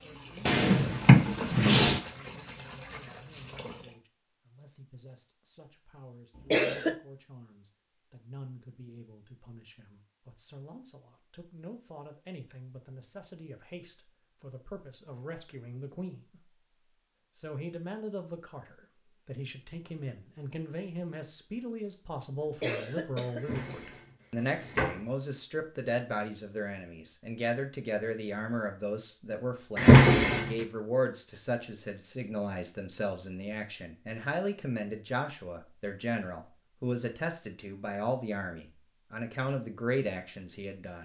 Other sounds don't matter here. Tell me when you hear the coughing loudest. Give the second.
7 s.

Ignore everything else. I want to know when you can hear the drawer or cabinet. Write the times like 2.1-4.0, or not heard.
0.5-2.0, 23.4-25.0, 29.8-30.6.